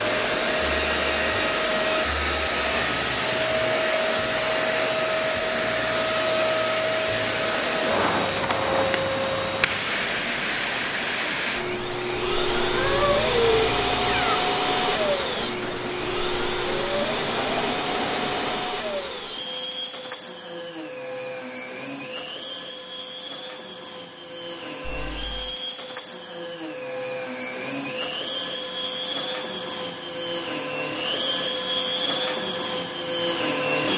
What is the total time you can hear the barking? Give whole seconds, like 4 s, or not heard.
not heard.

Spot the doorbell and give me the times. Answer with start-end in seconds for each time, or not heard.
not heard.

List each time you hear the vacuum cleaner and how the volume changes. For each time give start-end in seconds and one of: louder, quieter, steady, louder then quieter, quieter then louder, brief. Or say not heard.
0.0-33.9 quieter then louder.